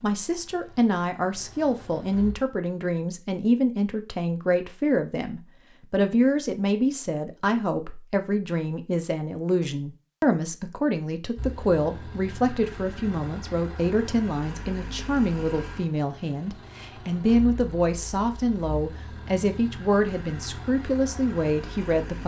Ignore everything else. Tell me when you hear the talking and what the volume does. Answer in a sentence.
The talking can be heard from 0.0 to 22.2 s, at a steady volume.